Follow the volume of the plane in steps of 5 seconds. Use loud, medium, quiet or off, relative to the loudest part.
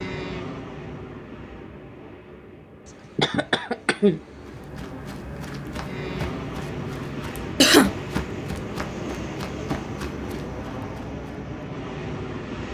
medium, loud, loud.